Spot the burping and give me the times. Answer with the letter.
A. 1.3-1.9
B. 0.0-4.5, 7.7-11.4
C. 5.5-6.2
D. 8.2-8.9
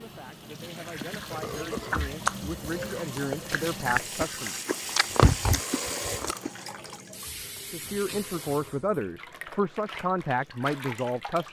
A.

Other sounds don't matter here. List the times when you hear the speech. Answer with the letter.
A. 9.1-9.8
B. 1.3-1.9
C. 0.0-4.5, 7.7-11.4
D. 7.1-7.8
C.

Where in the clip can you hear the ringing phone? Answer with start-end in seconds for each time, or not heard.
not heard.